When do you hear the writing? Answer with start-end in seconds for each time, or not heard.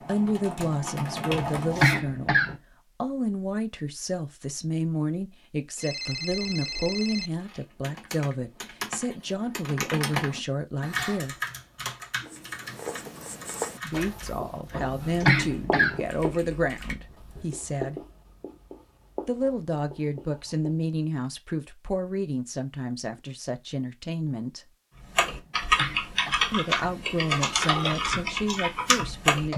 12.2-20.9.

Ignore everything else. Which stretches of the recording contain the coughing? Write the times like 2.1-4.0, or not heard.
1.2-2.5, 14.7-16.0, 25.2-26.4.